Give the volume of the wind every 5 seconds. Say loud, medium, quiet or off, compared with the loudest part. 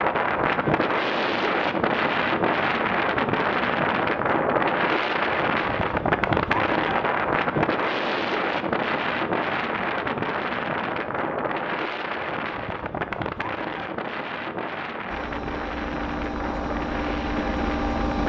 loud, loud, medium, medium.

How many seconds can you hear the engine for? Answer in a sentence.
The engine can be heard for 3 seconds in total.